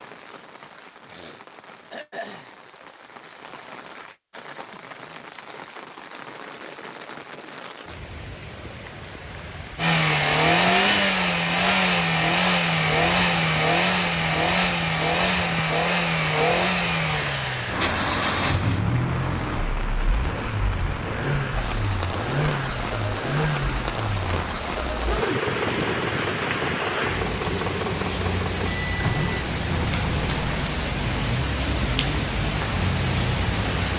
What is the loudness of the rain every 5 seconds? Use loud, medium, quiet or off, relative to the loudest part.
quiet, quiet, medium, medium, loud, loud, loud.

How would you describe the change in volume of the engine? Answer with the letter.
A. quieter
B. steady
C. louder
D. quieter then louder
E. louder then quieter
A.